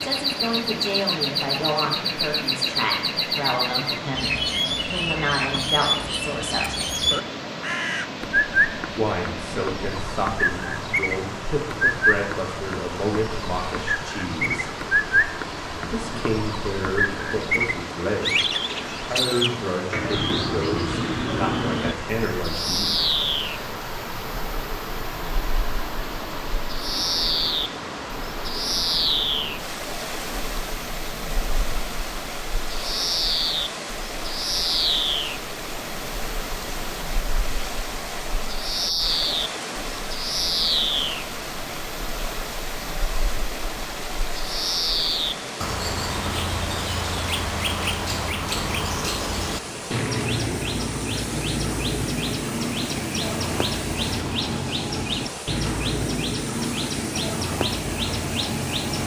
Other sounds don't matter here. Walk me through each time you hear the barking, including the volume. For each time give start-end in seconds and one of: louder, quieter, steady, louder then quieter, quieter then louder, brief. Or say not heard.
not heard.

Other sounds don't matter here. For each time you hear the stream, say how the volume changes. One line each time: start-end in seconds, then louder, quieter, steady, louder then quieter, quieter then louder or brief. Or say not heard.
0.0-59.0 steady.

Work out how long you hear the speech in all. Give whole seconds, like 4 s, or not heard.
20 s.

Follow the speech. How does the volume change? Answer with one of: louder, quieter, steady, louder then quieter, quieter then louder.
steady.